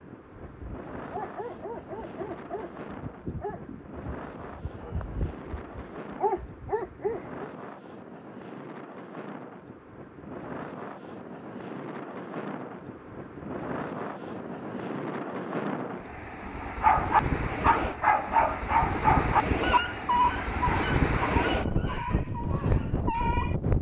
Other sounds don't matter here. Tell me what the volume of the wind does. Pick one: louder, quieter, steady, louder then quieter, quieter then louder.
louder.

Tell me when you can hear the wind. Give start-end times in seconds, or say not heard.
0.0-23.7.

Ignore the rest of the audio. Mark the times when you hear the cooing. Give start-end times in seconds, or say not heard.
not heard.